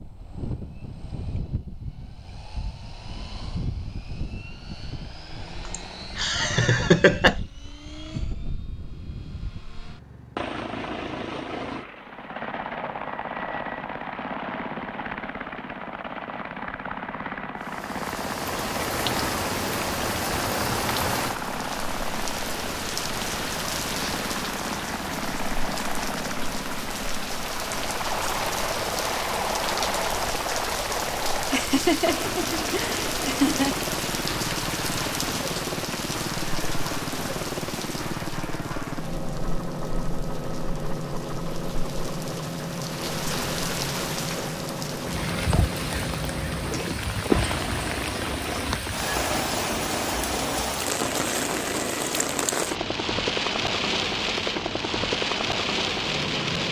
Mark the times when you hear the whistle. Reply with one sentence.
The whistle can't be heard in this clip.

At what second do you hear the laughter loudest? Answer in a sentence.
The volume of the laughter peaks at 7 seconds.